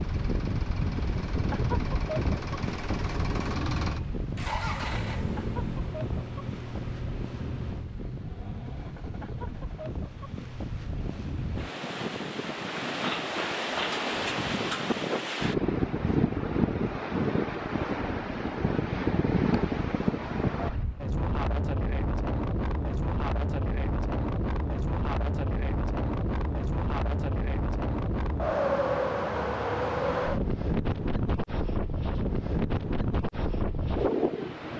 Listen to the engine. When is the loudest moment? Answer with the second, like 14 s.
5 s.